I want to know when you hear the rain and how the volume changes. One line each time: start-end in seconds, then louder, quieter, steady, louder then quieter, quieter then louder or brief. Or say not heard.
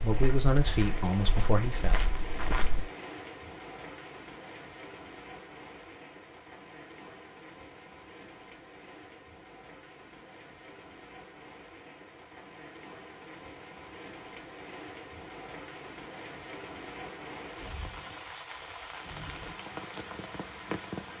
0.0-21.1 quieter then louder.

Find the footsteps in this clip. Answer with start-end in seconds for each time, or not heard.
0.0-2.9.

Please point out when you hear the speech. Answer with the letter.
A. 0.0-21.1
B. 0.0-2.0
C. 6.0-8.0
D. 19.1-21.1
B.